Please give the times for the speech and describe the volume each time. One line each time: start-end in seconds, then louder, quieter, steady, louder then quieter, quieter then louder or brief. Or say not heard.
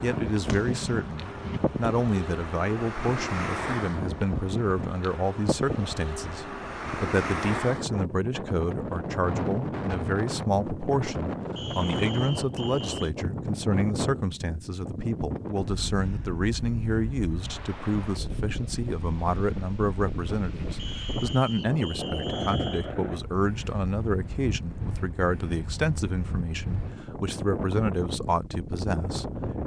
0.0-29.6 steady.